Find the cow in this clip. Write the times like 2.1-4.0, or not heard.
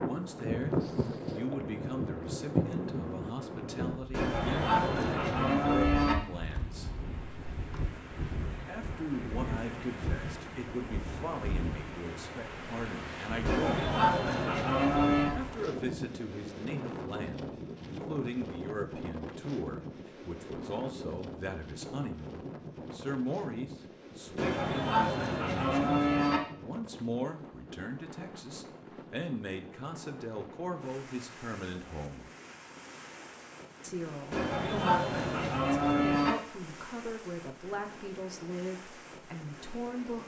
4.1-6.2, 13.4-15.3, 24.4-26.4, 34.3-36.4.